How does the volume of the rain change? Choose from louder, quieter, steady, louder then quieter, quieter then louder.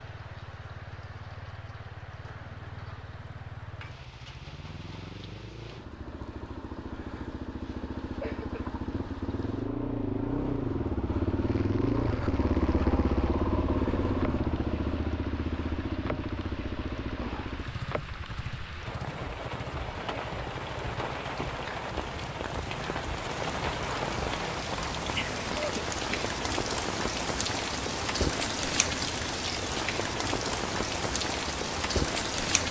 louder.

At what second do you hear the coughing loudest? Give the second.
26 s.